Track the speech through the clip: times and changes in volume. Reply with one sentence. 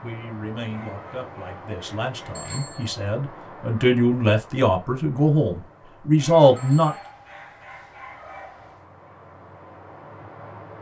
You can hear the speech from 0.0 to 7.0 s, getting louder.